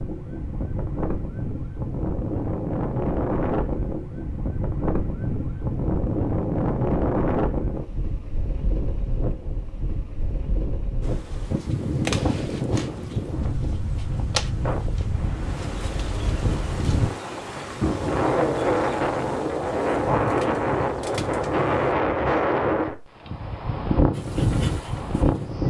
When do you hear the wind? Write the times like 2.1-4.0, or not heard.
0.0-25.6.